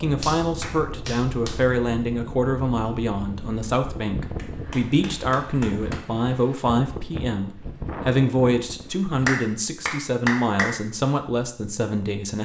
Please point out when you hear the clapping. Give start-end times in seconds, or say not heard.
0.2-1.6, 4.3-6.1, 9.2-10.8.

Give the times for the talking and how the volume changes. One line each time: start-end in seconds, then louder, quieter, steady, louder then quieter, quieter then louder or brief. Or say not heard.
0.0-12.3 steady.